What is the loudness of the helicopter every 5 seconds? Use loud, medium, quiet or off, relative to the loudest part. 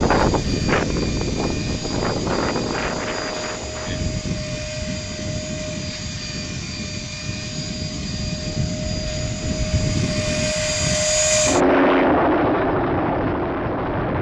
quiet, quiet, loud.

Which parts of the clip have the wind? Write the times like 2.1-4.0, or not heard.
0.0-14.1.